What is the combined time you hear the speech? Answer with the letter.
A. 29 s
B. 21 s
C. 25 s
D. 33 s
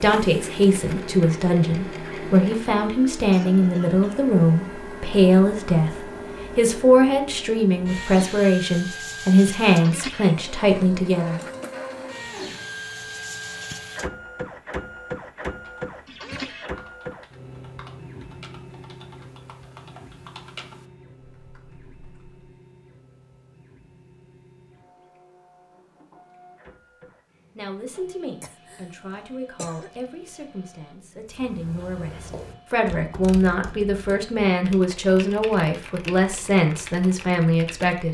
B.